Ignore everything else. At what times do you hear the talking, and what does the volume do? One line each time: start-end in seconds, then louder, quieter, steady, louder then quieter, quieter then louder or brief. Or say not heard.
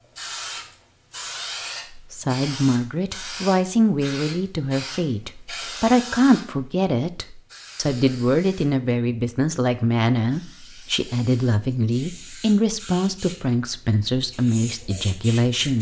1.9-15.7 steady.